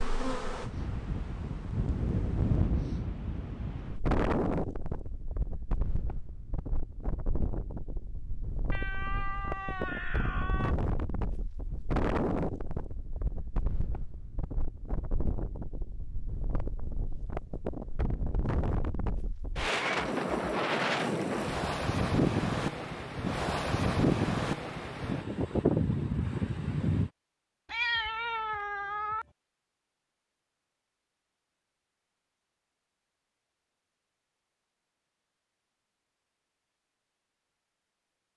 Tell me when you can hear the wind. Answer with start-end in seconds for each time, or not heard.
0.0-27.1.